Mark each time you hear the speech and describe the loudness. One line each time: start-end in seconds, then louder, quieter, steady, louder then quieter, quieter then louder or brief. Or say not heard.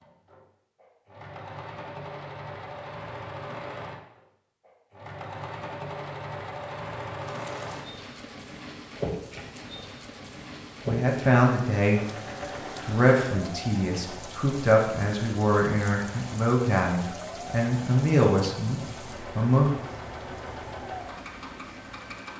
10.8-12.0 brief
12.8-19.7 louder.